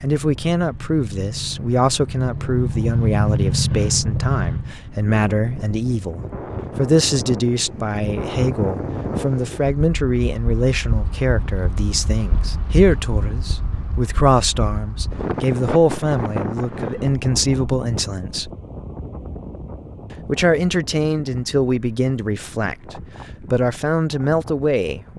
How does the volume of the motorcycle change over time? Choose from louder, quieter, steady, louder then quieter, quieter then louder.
louder.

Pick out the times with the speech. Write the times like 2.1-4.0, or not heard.
0.0-18.5, 20.2-25.1.